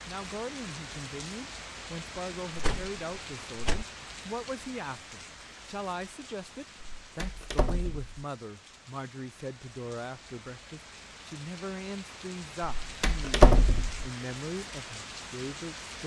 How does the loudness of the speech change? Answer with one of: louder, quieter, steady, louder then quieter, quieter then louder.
steady.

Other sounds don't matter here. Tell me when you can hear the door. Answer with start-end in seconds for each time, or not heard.
2.5-3.9, 6.8-8.2, 12.8-14.1.